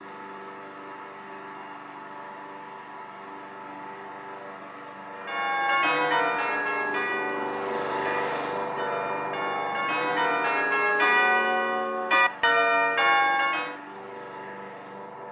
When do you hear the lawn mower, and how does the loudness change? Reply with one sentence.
You can hear the lawn mower from 0.0 to 15.2 s, getting louder then quieter.